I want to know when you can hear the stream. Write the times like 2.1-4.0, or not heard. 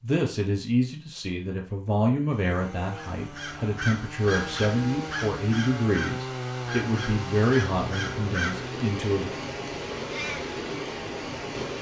4.0-11.7.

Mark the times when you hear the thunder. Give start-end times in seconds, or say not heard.
not heard.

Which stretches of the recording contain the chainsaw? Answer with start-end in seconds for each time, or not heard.
2.2-11.7.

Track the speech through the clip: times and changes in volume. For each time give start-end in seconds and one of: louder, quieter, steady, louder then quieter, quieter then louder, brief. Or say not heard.
0.0-9.3 steady.